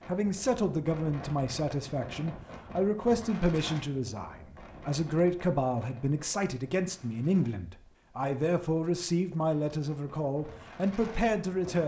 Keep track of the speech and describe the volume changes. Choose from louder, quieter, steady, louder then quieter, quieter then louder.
steady.